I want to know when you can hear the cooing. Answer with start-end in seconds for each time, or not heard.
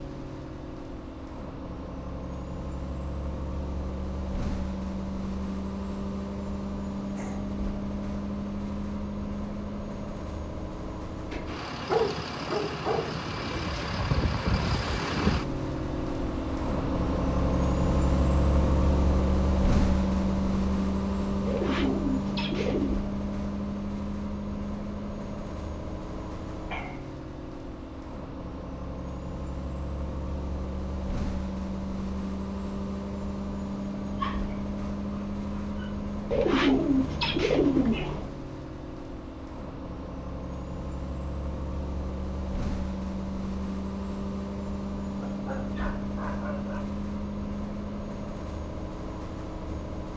21.4-23.0, 36.3-38.3.